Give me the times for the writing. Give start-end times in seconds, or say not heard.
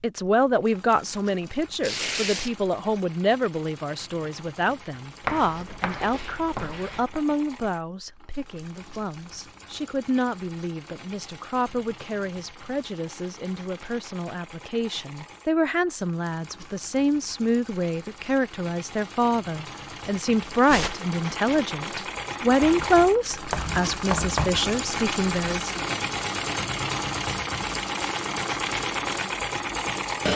5.2-7.2, 22.6-24.6.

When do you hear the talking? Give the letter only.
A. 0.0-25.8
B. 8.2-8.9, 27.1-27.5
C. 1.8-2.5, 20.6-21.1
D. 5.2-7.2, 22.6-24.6
A.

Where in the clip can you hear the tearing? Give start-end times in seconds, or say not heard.
1.8-2.5, 20.6-21.1.